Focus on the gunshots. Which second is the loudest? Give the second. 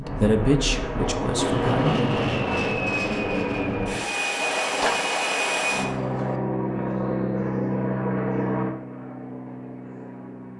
5 s.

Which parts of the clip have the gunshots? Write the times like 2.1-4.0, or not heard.
4.4-6.4.